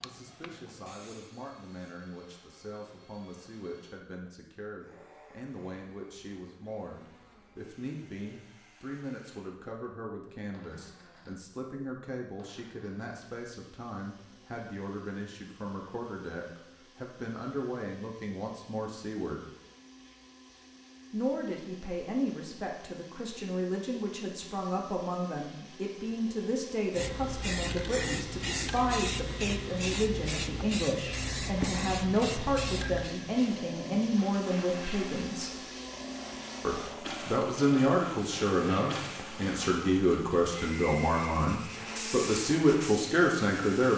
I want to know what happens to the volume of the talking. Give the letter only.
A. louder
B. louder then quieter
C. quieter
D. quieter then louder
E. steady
A.